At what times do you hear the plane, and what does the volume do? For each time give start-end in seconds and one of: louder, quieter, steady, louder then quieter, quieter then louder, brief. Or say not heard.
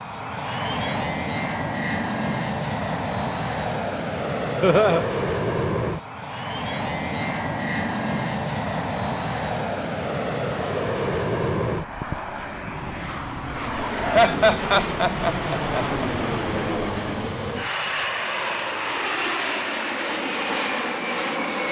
0.0-21.6 steady.